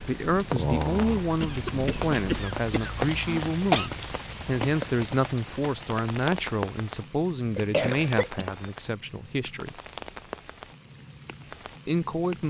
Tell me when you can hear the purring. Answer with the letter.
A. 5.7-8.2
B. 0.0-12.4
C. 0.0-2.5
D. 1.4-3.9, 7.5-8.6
C.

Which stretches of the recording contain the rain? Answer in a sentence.
The rain can be heard from 0.0 to 12.4 s.